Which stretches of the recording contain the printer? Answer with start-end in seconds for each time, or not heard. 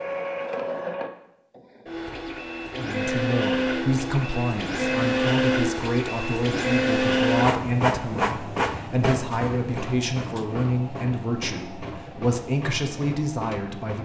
0.0-13.9.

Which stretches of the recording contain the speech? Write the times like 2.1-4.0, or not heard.
2.7-13.9.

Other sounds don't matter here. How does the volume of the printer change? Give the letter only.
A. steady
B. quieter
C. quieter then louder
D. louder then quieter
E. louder
D.